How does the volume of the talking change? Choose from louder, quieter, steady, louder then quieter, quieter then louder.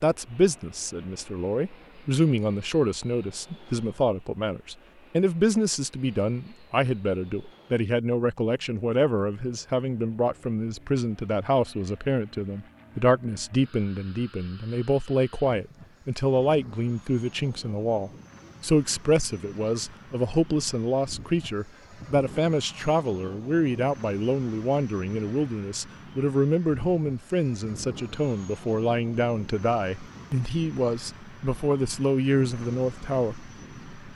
steady.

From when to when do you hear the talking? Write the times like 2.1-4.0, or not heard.
0.0-34.1.